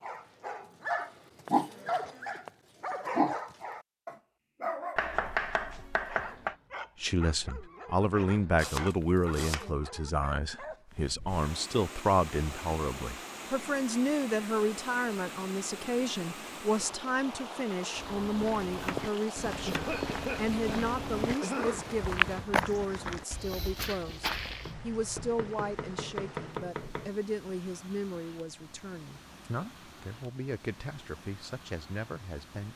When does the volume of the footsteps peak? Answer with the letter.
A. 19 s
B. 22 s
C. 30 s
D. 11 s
B.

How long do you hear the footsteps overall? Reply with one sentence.
You can hear the footsteps for 7 seconds altogether.